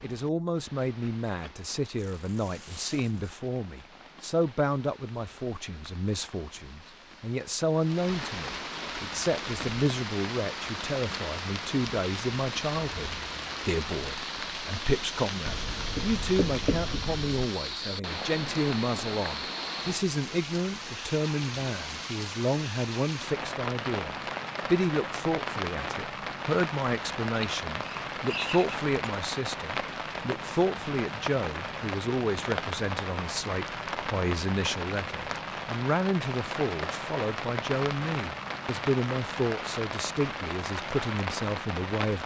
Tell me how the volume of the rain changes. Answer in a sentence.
The loudness of the rain goes up.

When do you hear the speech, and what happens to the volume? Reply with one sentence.
You can hear the speech from 0.0 to 42.2 s, at a steady volume.